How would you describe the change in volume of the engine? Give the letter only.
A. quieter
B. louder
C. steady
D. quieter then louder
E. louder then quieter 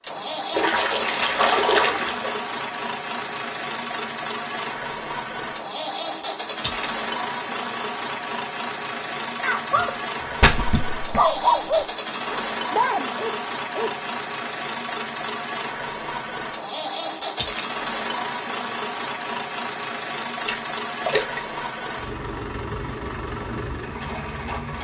C.